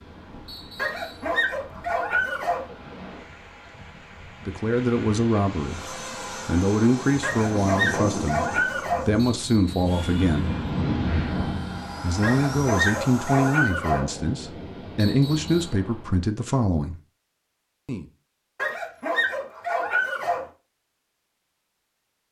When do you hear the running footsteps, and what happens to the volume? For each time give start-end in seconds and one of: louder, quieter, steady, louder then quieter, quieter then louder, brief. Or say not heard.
not heard.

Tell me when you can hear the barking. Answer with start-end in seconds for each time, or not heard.
0.8-2.6, 7.2-9.1, 12.2-14.1, 18.6-20.4.